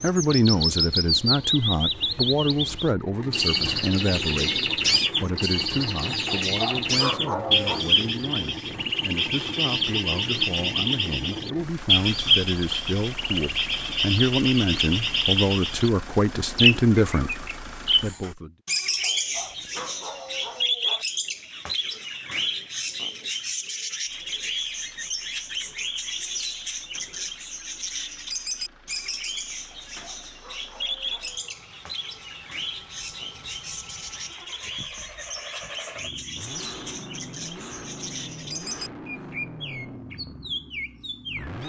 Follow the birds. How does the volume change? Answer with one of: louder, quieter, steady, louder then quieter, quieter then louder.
quieter.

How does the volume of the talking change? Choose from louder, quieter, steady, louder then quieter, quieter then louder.
quieter then louder.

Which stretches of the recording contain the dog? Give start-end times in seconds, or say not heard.
6.2-7.8, 19.0-21.1, 29.9-31.6.